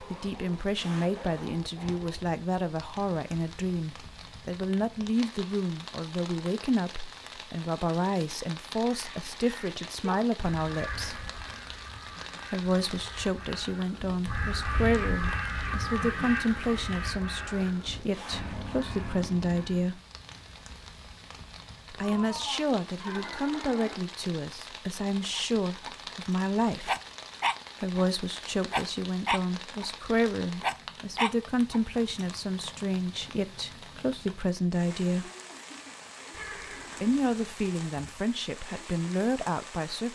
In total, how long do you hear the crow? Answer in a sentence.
The crow can be heard for 11 seconds in total.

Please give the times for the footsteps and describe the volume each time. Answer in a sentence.
You can't hear the footsteps here.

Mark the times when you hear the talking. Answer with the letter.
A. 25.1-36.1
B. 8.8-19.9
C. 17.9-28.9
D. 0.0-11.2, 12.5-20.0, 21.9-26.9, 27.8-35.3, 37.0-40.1
D.